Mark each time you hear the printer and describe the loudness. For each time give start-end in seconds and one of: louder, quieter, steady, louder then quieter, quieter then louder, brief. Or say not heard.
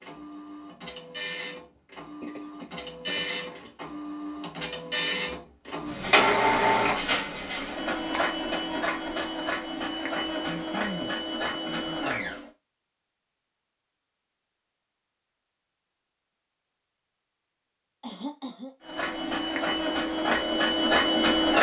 0.0-12.5 louder then quieter
18.9-21.5 brief.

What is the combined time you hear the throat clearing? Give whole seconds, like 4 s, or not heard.
4 s.